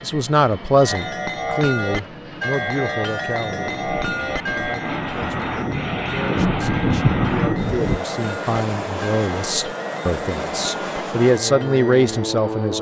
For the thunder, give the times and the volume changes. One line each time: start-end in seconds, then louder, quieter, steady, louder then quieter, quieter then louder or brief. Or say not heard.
3.4-8.0 louder.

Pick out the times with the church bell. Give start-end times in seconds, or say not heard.
0.8-12.2.